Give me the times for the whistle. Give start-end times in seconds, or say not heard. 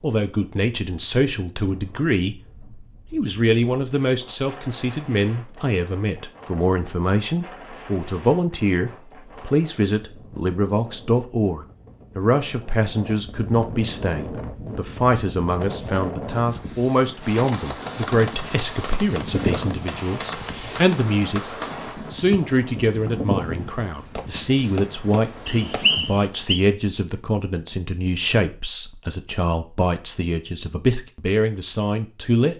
25.4-26.6.